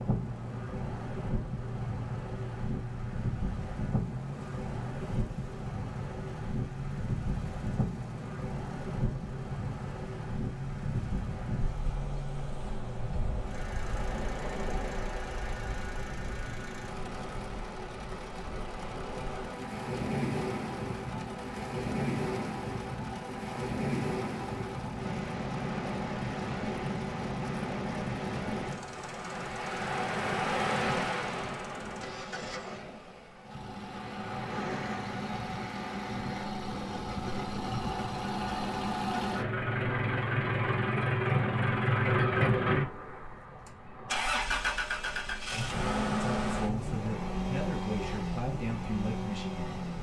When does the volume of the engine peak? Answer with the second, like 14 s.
42 s.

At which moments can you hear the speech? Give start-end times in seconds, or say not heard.
46.1-49.8.